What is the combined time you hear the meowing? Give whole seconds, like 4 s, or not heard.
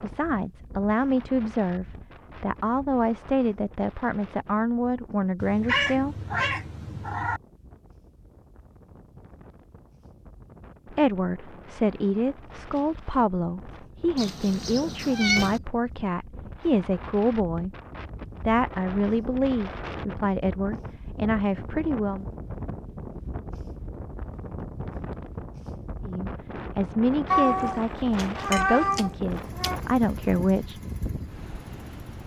6 s.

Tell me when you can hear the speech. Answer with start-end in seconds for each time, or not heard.
0.0-6.2, 10.8-17.7, 18.4-22.2, 26.0-30.8.